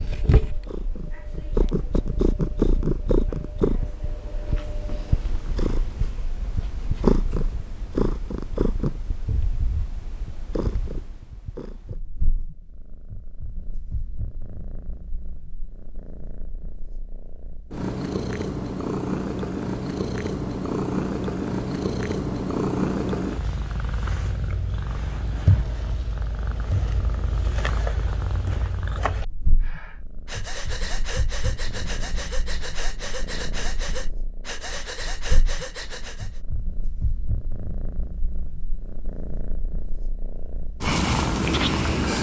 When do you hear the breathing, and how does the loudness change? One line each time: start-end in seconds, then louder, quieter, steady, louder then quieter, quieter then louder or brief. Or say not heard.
29.6-36.4 steady.